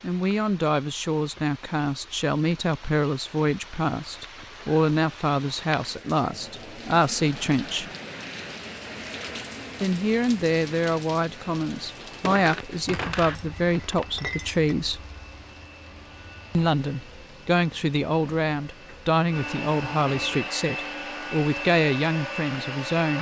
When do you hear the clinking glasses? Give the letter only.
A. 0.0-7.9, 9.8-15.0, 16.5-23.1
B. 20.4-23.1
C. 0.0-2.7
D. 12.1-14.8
D.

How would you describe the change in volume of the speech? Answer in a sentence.
The volume of the speech stays about the same.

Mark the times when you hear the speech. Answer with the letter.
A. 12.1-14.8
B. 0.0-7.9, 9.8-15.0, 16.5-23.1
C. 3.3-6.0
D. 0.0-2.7
B.